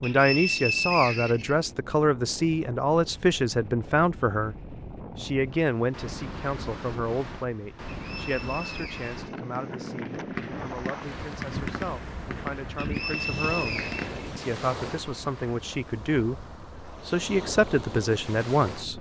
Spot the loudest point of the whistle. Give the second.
1 s.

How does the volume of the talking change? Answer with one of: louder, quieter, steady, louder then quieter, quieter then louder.
quieter then louder.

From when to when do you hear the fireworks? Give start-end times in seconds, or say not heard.
9.2-14.5.